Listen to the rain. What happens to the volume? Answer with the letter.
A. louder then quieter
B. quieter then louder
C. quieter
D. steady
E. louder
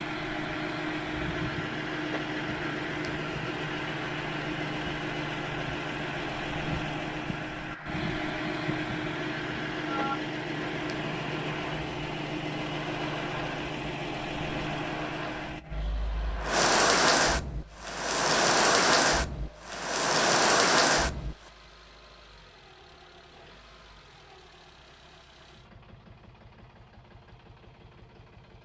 E.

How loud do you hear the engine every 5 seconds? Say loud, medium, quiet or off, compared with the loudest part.
loud, loud, loud, medium, quiet, quiet.